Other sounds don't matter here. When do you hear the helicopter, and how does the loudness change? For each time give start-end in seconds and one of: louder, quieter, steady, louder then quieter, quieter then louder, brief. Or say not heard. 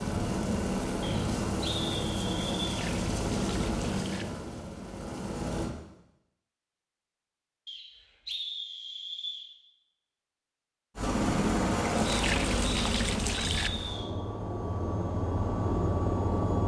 0.0-5.7 quieter
10.9-16.6 quieter then louder.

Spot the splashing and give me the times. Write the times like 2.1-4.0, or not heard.
2.6-4.2, 11.8-13.7.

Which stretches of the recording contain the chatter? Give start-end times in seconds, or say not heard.
not heard.